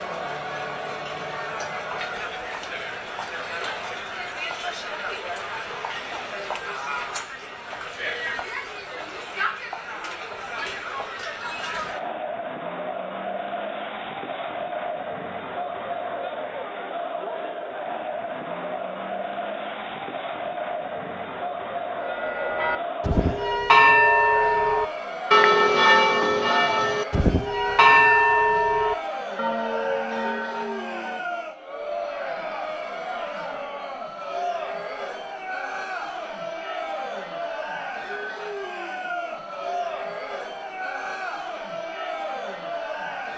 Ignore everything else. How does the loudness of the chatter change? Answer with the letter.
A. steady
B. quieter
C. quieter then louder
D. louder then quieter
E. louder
A.